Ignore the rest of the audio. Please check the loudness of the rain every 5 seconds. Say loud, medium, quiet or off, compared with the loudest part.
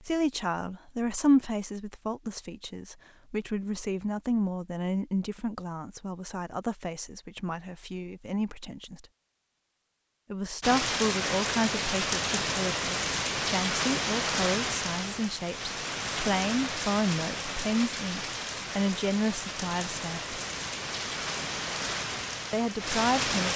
off, off, loud, medium, loud.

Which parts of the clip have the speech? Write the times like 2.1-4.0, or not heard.
0.0-9.1, 10.3-20.4, 22.5-23.5.